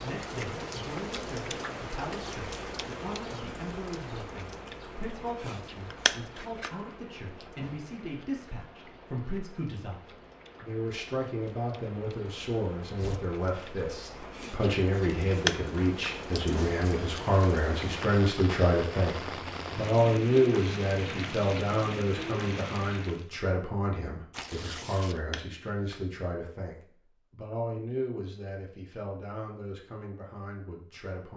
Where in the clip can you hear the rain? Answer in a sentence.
You can hear the rain from 0.0 to 23.3 s.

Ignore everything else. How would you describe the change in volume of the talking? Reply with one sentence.
The volume of the talking goes up, then down.